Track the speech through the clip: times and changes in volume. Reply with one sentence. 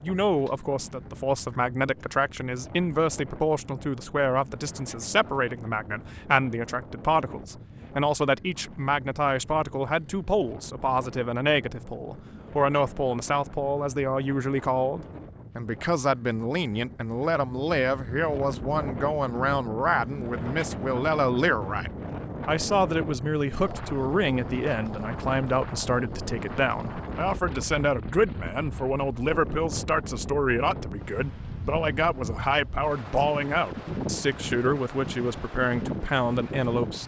The speech can be heard from 0.0 to 37.0 s, at a steady volume.